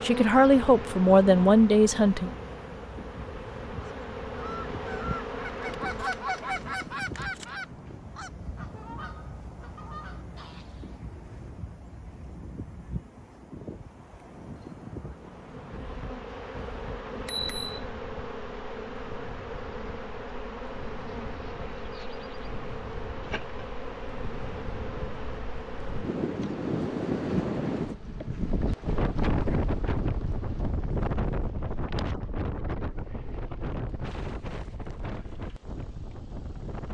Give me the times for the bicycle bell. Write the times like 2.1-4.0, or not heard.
17.1-17.7.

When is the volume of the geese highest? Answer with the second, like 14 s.
6 s.